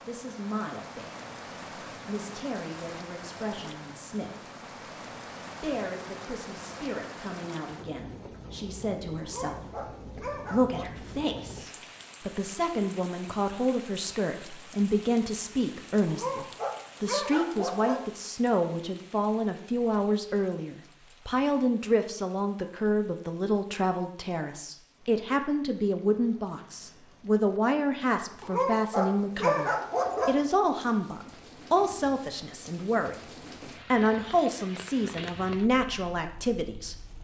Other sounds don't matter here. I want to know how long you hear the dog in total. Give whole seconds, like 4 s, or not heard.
6 s.